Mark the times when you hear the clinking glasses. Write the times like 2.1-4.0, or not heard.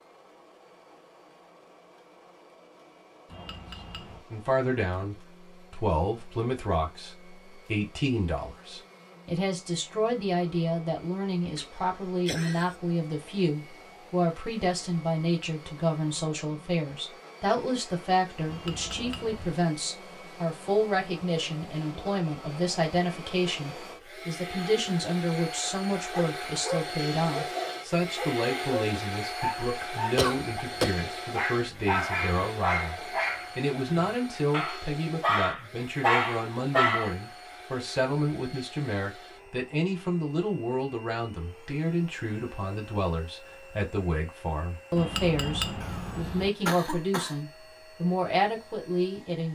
3.2-4.2, 18.4-19.6, 45.0-46.5.